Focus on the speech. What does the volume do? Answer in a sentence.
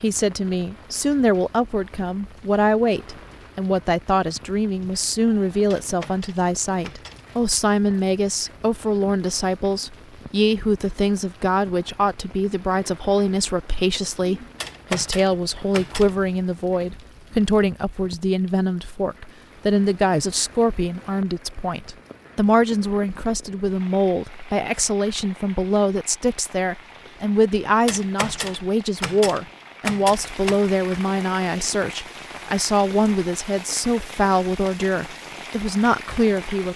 The volume of the speech stays about the same.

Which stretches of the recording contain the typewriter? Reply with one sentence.
You can hear the typewriter from 5.7 to 7.2 s, from 14.6 to 16.1 s and from 27.9 to 30.6 s.